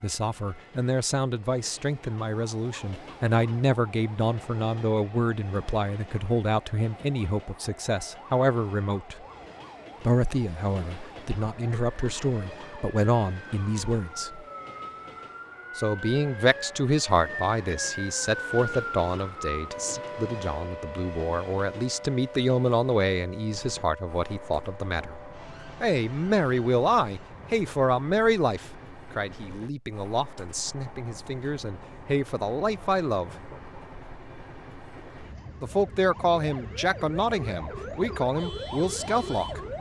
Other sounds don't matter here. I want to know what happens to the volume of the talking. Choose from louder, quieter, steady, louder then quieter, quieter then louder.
steady.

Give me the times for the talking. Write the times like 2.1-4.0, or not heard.
0.0-9.2, 10.0-14.4, 15.8-25.1, 25.8-33.3, 35.6-39.6.